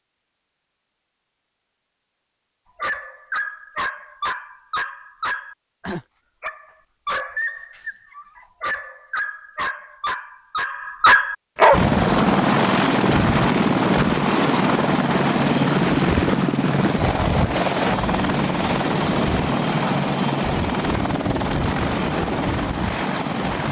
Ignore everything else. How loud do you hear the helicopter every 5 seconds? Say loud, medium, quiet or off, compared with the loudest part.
off, off, loud, loud, medium.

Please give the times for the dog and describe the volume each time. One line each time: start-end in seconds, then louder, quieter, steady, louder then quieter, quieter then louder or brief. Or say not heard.
2.8-11.8 louder.